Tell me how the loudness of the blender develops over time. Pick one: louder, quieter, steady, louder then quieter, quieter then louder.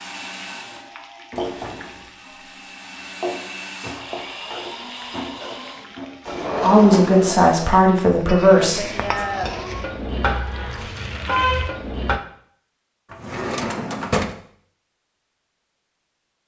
quieter then louder.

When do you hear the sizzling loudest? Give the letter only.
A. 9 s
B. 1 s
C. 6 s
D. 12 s
D.